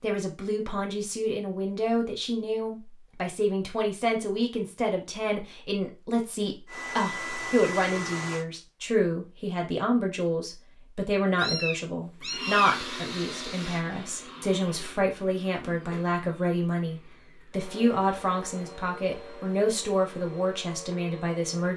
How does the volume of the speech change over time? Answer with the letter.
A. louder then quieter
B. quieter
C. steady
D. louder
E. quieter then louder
C.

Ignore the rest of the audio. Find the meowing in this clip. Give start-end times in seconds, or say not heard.
11.3-12.8.